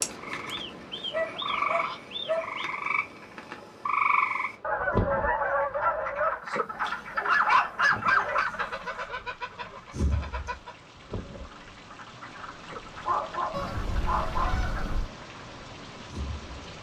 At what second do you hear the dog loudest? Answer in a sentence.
The loudest moment of the dog is at 7 seconds.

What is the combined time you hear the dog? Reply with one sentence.
You can hear the dog for 5 seconds altogether.